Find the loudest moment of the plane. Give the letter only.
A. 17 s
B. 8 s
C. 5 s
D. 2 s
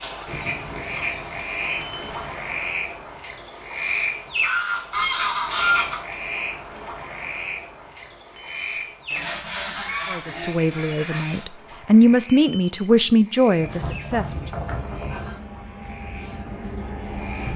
A.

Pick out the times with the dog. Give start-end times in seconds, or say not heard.
not heard.